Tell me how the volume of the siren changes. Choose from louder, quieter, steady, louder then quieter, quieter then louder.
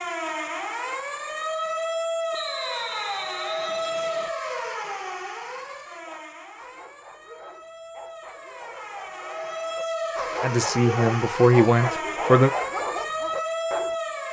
quieter then louder.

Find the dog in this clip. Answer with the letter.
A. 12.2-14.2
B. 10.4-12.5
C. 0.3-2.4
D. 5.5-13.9
D.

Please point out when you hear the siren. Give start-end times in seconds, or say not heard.
0.0-14.2.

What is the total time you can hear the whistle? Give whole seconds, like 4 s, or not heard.
2 s.